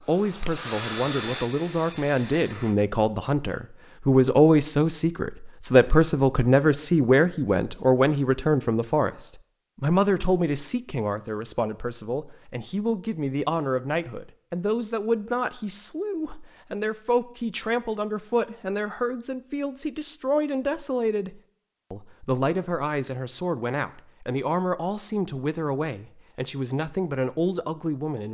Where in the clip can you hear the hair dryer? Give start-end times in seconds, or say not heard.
0.0-2.8.